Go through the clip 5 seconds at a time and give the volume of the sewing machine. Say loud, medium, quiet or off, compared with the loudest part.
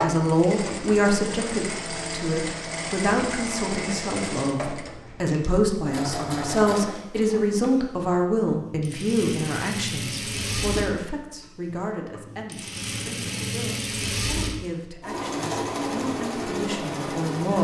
loud, medium, loud, loud.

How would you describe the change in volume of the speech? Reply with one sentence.
The volume of the speech goes down.